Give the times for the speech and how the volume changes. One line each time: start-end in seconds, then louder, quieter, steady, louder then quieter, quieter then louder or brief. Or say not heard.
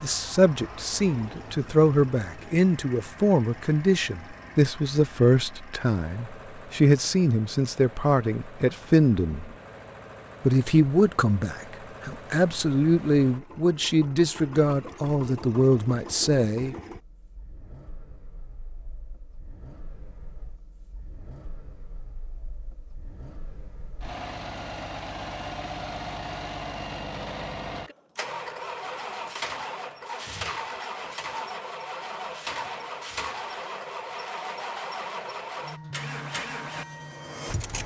0.0-9.6 steady
10.4-16.8 steady.